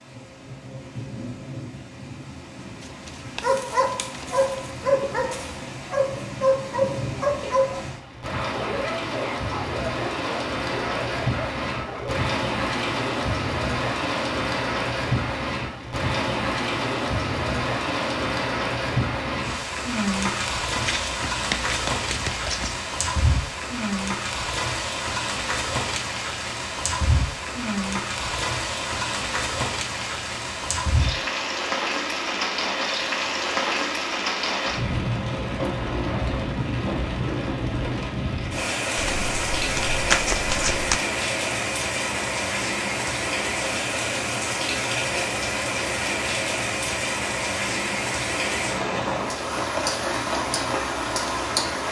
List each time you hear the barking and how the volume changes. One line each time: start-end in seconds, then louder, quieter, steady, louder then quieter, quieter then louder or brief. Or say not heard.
3.4-12.3 quieter.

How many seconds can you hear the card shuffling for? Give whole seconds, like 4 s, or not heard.
6 s.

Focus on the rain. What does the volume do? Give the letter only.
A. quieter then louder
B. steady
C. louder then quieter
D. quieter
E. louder
E.